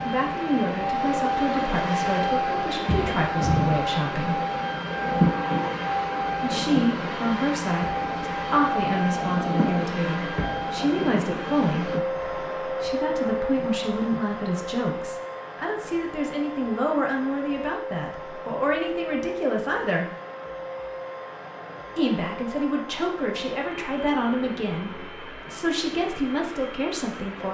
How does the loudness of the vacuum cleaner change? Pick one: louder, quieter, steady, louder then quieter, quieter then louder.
quieter.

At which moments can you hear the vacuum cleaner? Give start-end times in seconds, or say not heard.
0.0-27.4.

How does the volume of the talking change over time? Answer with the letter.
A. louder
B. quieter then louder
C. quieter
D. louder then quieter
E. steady
E.